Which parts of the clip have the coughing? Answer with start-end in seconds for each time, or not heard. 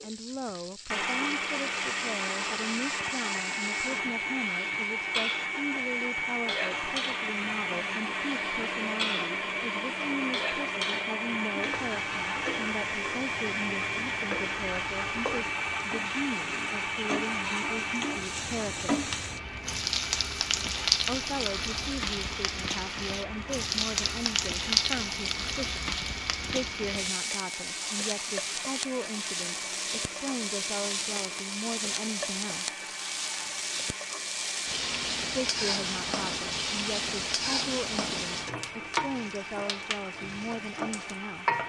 not heard.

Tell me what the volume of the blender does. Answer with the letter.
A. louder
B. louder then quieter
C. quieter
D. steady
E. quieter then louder
C.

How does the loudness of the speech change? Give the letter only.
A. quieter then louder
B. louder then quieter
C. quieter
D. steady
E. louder
D.